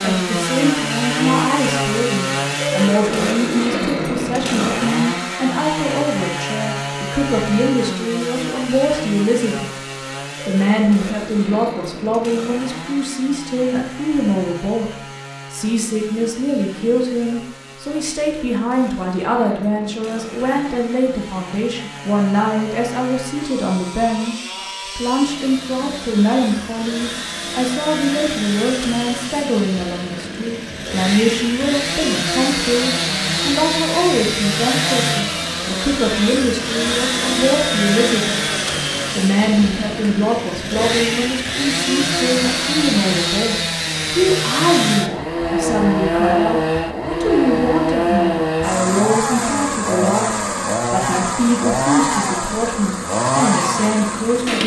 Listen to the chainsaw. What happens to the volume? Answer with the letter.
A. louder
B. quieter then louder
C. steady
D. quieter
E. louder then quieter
B.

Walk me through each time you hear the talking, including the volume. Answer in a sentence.
You can hear the talking from 0.0 to 9.8 s, at a steady volume; from 10.4 to 38.4 s, at a steady volume; and from 39.1 to 54.6 s, at a steady volume.